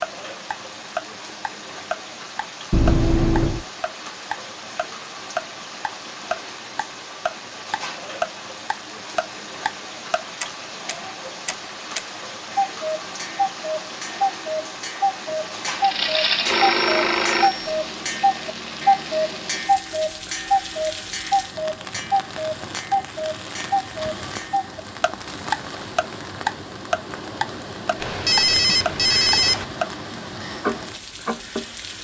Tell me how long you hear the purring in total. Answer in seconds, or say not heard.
not heard.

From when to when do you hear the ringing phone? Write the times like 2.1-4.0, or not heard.
2.7-3.6, 15.8-17.7, 28.0-29.6.